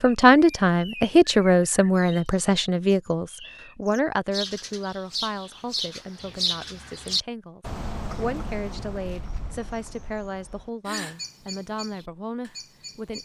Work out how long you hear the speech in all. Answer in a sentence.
You can hear the speech for 13 seconds altogether.